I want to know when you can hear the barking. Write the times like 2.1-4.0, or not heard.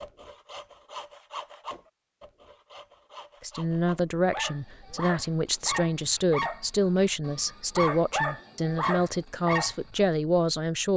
4.3-10.0.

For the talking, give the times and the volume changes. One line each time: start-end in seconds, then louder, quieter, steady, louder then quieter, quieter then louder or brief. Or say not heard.
3.4-10.9 steady.